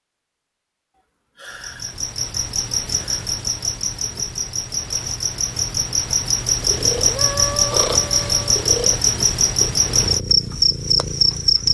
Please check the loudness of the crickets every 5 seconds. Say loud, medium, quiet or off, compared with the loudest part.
medium, loud, loud.